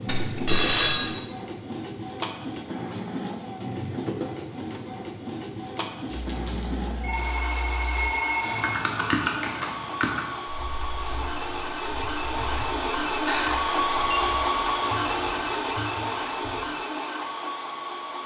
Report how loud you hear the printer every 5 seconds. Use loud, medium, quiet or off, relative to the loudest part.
medium, medium, loud, loud.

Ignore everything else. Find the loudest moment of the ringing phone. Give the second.
1 s.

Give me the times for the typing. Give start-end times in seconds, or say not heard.
6.0-16.6.